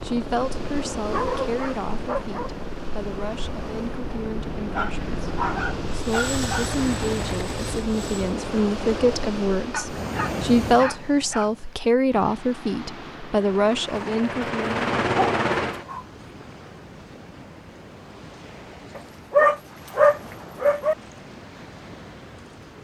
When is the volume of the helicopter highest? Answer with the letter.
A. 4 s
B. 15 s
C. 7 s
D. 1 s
B.